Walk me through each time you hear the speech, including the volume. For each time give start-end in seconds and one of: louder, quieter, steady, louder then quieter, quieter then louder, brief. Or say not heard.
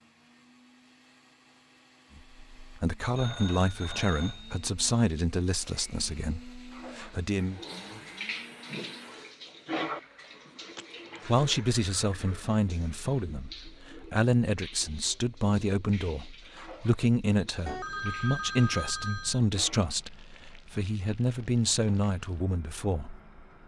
2.1-7.6 quieter
11.2-23.2 steady.